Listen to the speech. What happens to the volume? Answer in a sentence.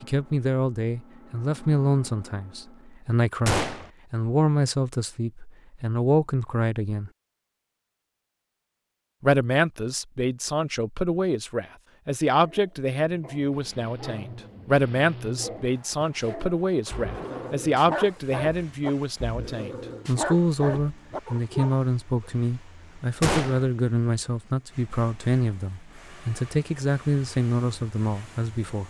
The loudness of the speech stays about the same.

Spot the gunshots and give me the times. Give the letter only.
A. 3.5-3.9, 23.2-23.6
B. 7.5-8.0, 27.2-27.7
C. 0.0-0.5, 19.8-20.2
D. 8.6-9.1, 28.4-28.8
A.